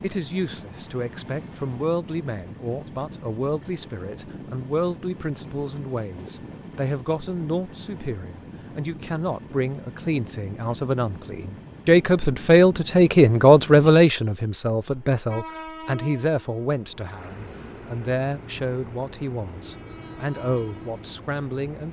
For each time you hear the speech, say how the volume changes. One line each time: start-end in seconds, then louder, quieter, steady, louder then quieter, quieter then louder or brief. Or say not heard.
0.0-21.8 louder then quieter.